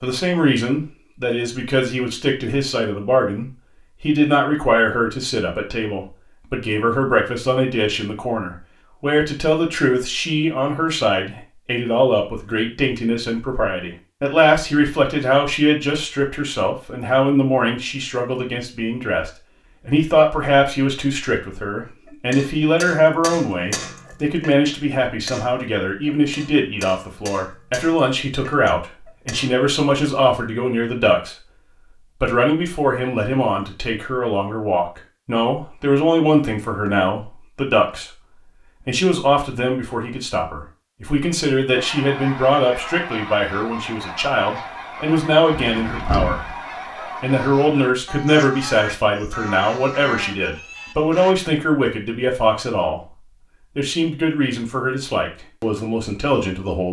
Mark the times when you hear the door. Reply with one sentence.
The door can be heard from 45.5 to 46.5 s.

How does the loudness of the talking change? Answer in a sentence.
The volume of the talking stays about the same.